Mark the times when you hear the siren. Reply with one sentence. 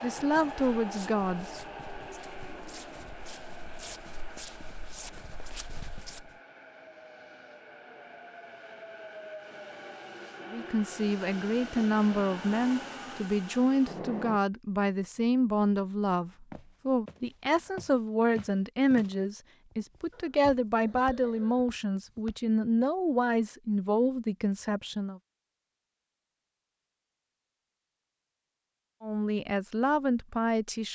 The siren can't be heard in this clip.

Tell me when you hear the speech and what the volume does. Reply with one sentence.
You can hear the speech briefly from 0.0 to 1.4 s; from 10.5 to 25.2 s, at a steady volume; and briefly from 29.0 to 30.8 s.